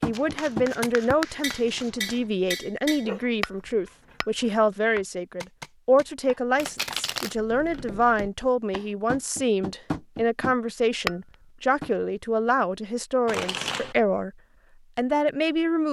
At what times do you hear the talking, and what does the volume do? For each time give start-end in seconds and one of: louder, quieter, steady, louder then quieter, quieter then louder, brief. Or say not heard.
0.0-14.3 steady
14.9-15.8 brief.